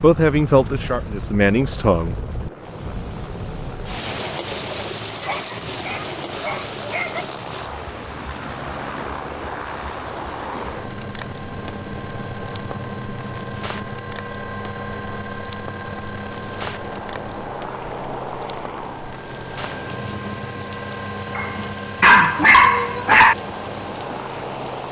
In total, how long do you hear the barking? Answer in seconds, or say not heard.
4 s.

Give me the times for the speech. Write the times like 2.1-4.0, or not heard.
0.0-2.5.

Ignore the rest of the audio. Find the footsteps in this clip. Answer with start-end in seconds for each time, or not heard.
not heard.